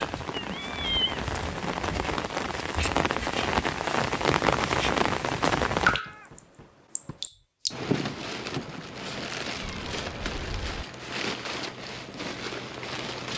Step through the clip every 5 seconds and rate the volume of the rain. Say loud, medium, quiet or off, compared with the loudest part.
loud, loud, medium.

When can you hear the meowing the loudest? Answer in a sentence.
The loudest moment of the meowing is at 1 second.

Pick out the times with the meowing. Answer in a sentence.
The meowing can be heard from 0.3 to 2.3 s, from 5.9 to 7.3 s and from 9.6 to 10.8 s.